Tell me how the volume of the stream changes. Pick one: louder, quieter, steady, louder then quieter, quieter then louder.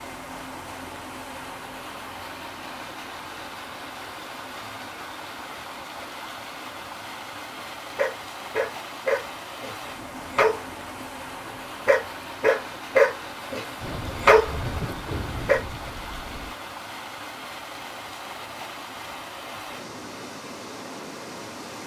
steady.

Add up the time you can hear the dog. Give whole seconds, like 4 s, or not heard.
8 s.